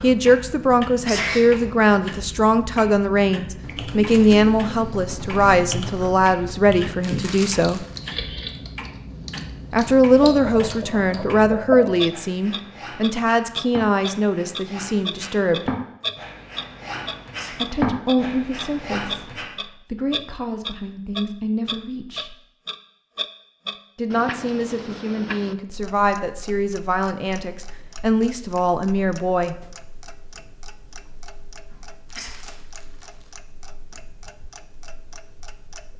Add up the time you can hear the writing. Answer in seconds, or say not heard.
9 s.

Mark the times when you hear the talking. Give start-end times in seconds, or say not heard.
0.0-7.8, 9.7-15.8, 17.5-22.4, 23.9-29.6.